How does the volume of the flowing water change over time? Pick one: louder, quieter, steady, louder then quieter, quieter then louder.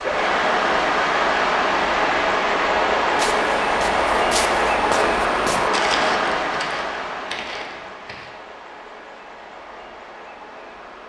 quieter.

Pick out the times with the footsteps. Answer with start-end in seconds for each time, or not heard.
3.1-8.3.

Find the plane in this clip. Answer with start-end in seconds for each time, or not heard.
not heard.